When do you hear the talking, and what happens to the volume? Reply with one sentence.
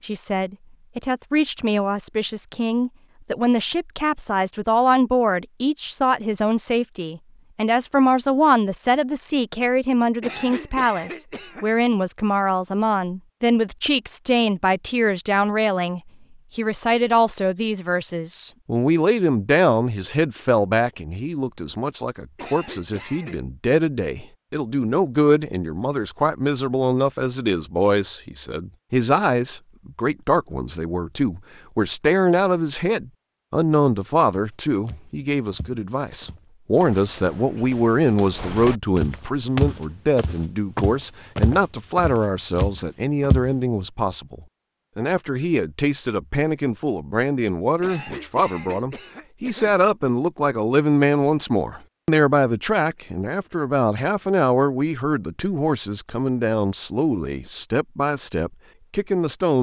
The talking can be heard from 0.0 to 59.5 s, at a steady volume.